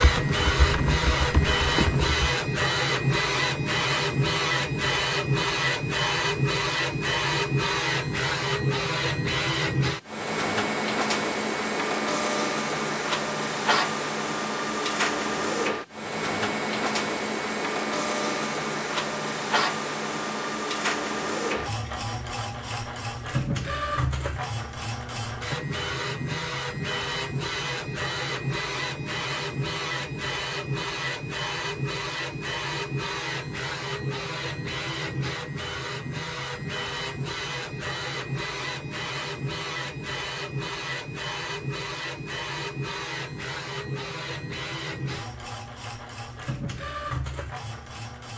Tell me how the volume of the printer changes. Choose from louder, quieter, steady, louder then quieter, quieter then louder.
quieter.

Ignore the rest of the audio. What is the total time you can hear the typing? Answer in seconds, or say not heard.
2 s.